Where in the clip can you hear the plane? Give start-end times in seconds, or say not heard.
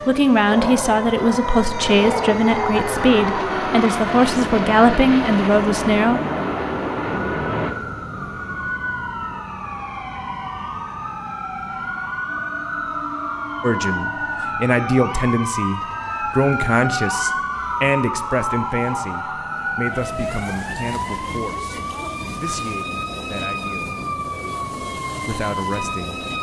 0.0-7.8.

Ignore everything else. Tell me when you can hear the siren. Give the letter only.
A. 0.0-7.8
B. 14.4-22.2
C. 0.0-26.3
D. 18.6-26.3
C.